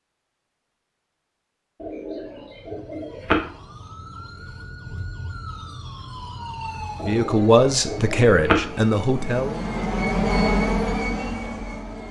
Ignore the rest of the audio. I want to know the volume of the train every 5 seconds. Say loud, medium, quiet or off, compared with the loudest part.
off, medium, loud.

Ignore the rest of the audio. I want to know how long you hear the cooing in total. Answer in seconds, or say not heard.
3 s.